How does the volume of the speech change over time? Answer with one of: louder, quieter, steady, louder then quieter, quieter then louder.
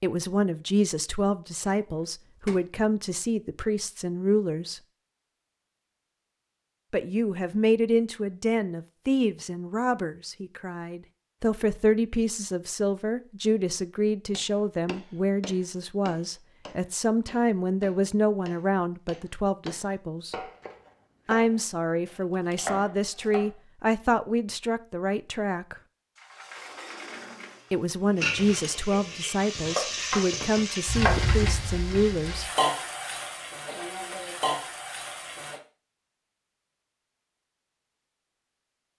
steady.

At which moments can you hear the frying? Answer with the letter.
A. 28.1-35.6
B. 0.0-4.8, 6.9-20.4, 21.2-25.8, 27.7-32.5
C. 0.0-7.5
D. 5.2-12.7
A.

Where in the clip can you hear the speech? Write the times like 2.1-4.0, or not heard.
0.0-4.8, 6.9-20.4, 21.2-25.8, 27.7-32.5.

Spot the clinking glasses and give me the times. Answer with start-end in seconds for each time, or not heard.
not heard.